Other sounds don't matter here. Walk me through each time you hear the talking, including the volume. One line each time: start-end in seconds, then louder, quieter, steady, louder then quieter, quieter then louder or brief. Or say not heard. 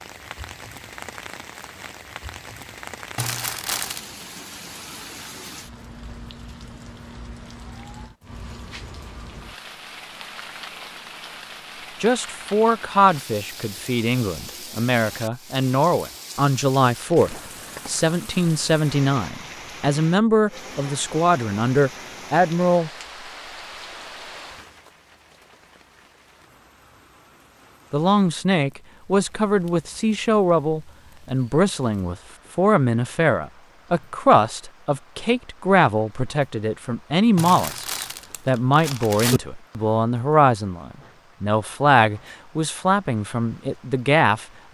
12.0-22.9 steady
27.9-44.7 steady.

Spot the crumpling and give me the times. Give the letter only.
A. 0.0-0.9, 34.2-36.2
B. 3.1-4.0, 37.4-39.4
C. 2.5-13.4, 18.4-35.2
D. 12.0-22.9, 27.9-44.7
B.